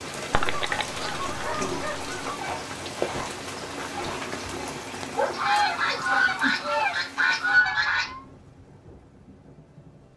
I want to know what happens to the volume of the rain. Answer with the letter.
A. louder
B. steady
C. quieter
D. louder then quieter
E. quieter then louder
C.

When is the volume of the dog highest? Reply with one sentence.
The volume of the dog peaks at 5 seconds.